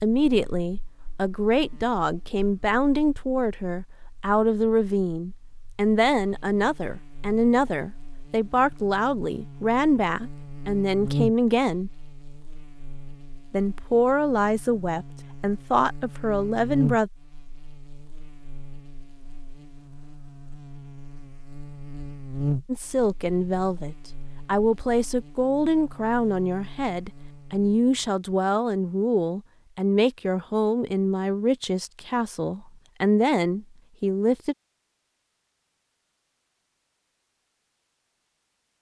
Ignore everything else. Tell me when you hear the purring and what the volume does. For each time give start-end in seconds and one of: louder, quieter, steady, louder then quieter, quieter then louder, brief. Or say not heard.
not heard.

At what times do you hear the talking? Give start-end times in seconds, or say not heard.
0.0-11.9, 13.5-17.1, 22.6-34.5.